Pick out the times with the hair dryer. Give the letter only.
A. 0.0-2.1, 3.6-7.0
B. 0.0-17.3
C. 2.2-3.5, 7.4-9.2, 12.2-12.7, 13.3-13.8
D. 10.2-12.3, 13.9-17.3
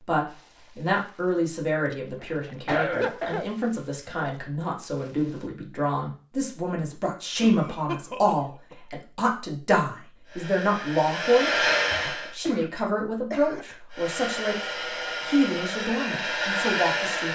D.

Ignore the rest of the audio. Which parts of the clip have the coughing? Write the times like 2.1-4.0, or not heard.
2.2-3.5, 7.4-9.2, 12.2-12.7, 13.3-13.8.